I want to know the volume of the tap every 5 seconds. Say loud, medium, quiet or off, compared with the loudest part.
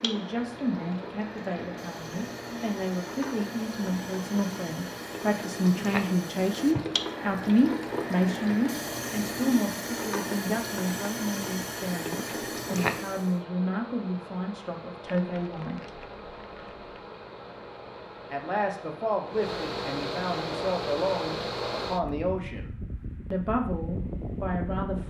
medium, loud, loud, off, off.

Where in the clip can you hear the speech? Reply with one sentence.
You can hear the speech from 0.0 to 15.8 s, from 18.3 to 22.7 s and from 23.3 to 25.0 s.